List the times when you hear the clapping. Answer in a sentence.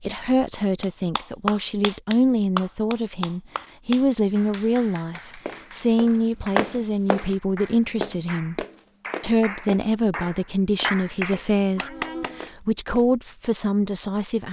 You can hear the clapping from 0.8 to 12.5 s.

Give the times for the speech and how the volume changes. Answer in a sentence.
You can hear the speech from 0.0 to 14.4 s, at a steady volume.